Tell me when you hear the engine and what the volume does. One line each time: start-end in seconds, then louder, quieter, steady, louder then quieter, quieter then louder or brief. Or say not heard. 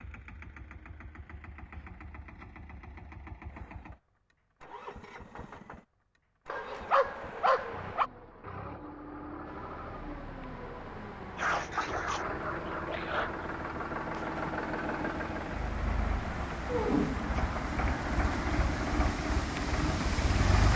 0.0-20.7 louder.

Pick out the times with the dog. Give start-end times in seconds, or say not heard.
6.5-8.1, 11.3-13.5.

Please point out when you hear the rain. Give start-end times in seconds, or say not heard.
9.4-20.7.